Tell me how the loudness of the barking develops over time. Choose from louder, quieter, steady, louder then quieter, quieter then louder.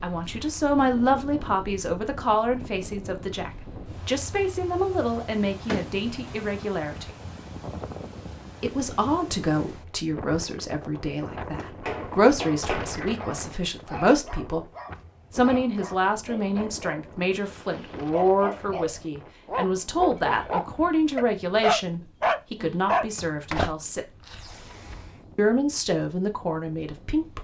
louder.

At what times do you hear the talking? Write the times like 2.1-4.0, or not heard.
0.0-7.1, 8.6-14.7, 15.3-24.1, 25.4-27.4.